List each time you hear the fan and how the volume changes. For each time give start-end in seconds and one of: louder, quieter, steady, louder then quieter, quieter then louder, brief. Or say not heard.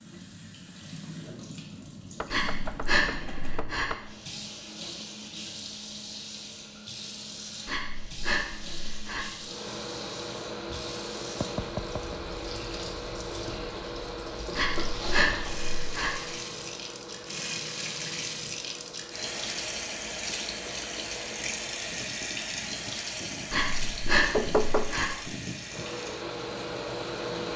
9.4-27.5 quieter then louder.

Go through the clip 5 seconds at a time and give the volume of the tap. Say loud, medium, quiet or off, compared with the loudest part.
medium, medium, medium, loud, loud, medium.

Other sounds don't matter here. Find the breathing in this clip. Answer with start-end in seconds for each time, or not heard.
2.3-3.9, 7.7-9.2, 14.6-16.1, 23.5-25.1.